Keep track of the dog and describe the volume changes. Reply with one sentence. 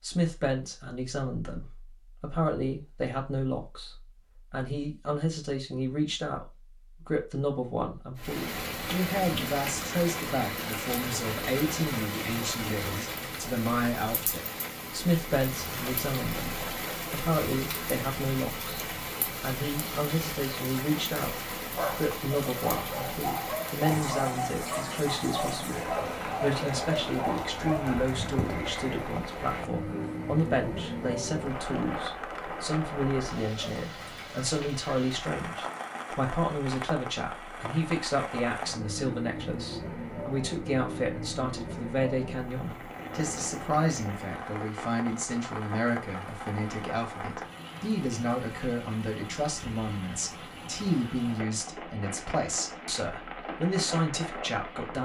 The volume of the dog stays about the same.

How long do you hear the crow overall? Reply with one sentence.
You can't hear the crow here.